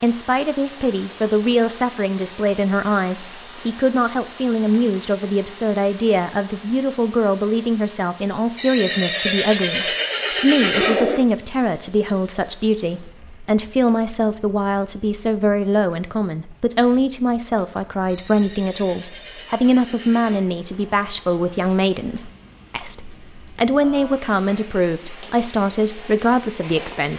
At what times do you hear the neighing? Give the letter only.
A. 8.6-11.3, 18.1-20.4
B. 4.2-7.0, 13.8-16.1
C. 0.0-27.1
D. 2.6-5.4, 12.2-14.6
A.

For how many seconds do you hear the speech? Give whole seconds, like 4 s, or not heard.
27 s.